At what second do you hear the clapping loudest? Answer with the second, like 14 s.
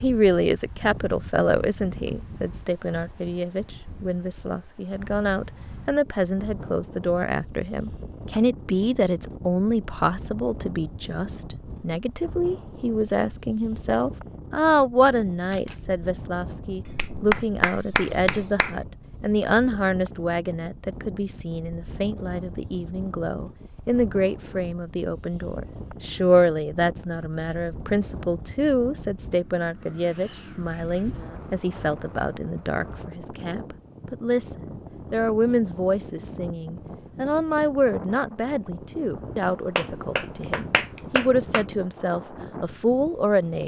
17 s.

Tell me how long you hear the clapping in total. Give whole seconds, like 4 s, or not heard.
4 s.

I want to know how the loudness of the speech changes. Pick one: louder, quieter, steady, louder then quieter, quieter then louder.
steady.